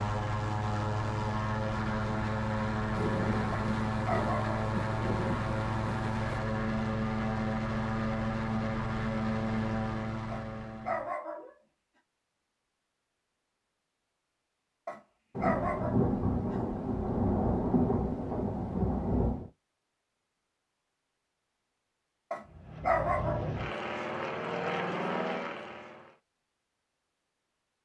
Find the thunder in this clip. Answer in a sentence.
The thunder can be heard from 2.9 to 6.4 s and from 15.3 to 19.5 s.